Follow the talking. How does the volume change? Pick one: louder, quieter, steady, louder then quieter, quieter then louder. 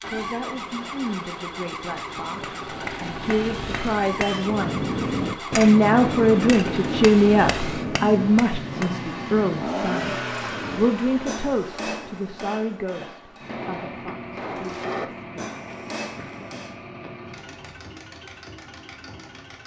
louder then quieter.